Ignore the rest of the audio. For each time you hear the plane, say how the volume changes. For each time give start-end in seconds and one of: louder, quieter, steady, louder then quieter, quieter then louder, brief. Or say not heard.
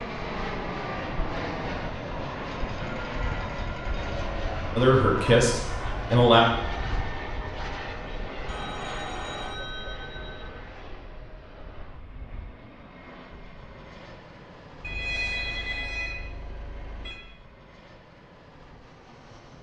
0.0-19.5 quieter.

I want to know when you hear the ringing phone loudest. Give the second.
15 s.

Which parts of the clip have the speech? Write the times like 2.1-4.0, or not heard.
4.8-6.5.